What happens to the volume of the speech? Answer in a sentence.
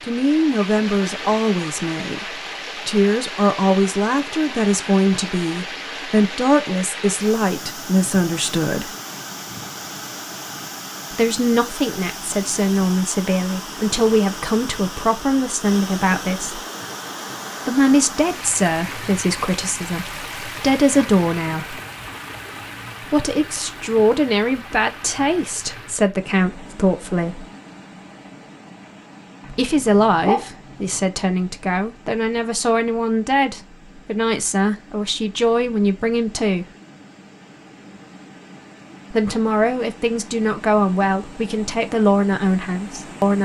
The loudness of the speech stays about the same.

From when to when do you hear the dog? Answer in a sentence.
You can hear the dog from 29.4 to 30.9 s.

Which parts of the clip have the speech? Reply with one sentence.
The speech can be heard from 0.0 to 8.9 s, from 11.1 to 16.6 s, from 17.6 to 21.8 s, from 23.0 to 27.4 s, from 29.5 to 36.6 s and from 39.1 to 43.3 s.